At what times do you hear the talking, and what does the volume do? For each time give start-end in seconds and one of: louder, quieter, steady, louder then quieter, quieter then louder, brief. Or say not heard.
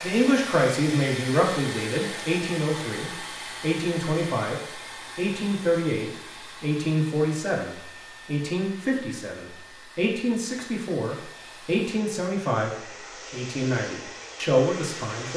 0.0-15.3 steady.